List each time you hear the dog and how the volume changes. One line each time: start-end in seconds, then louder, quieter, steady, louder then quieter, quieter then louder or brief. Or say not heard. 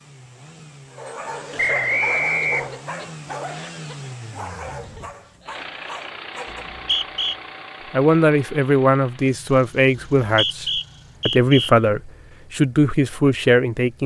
0.9-6.8 quieter.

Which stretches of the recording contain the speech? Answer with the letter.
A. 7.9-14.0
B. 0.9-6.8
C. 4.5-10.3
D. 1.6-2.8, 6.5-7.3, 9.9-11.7
A.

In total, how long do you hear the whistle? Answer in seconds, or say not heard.
4 s.